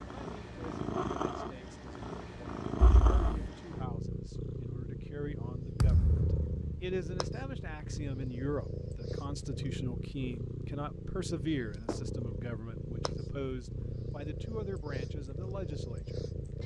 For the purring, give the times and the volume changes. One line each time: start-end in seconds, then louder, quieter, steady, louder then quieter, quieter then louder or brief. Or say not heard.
0.0-16.6 steady.